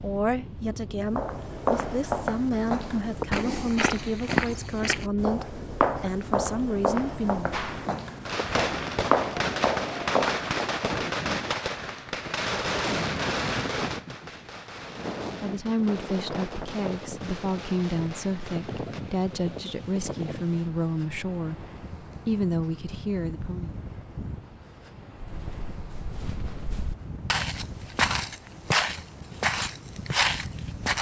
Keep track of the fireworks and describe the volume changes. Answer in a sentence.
The loudness of the fireworks goes down.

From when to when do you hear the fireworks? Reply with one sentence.
The fireworks can be heard from 7.5 to 19.0 s.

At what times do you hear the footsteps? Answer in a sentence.
You can hear the footsteps from 1.1 to 10.8 s and from 25.2 to 30.9 s.